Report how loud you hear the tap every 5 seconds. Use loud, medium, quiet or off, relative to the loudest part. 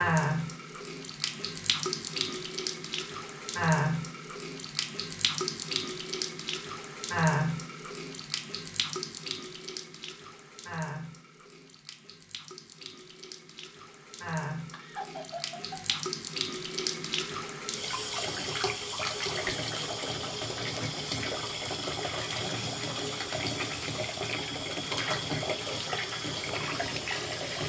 loud, loud, medium, loud, loud, loud.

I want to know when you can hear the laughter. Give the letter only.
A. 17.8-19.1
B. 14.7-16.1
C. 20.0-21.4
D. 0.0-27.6
B.